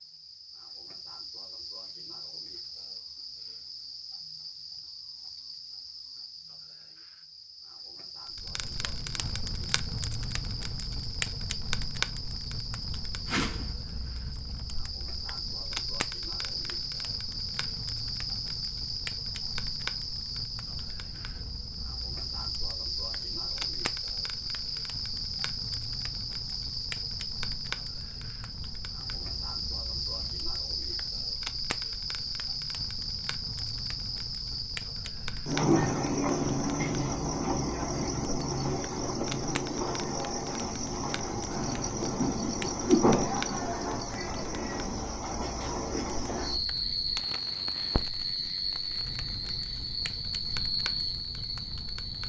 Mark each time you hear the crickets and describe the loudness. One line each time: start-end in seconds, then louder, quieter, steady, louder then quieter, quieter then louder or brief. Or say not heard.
0.0-52.2 louder.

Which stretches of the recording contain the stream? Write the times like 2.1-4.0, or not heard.
not heard.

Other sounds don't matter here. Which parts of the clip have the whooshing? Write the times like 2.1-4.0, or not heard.
13.2-13.7, 42.4-43.1.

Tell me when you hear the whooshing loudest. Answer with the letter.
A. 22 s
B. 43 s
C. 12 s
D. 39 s
B.